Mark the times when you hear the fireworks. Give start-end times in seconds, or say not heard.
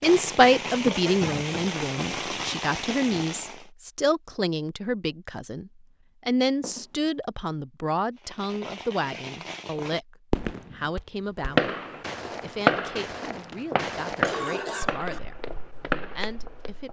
0.0-3.6, 8.2-16.8.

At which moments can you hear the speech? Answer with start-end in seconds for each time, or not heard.
0.0-11.8, 12.4-15.4, 16.1-16.8.